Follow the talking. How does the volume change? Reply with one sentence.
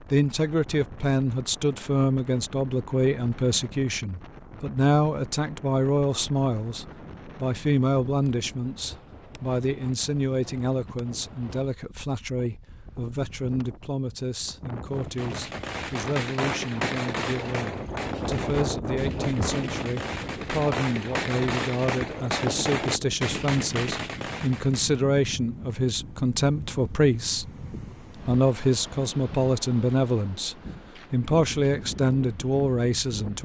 The volume of the talking goes down, then up.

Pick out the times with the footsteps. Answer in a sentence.
The footsteps can't be heard in this clip.